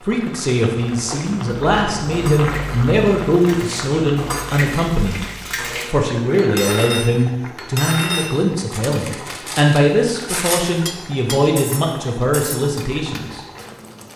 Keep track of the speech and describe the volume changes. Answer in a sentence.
The loudness of the speech stays about the same.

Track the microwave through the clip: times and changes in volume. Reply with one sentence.
You can't hear the microwave here.